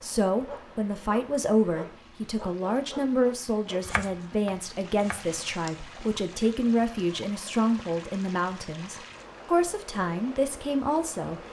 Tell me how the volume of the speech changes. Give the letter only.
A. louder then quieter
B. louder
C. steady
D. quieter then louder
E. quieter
C.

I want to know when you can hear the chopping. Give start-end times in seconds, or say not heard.
3.8-5.3.